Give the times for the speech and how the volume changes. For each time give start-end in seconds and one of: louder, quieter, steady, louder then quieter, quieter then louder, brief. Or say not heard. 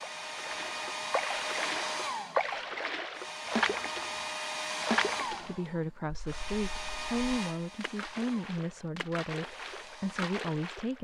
5.3-10.9 steady.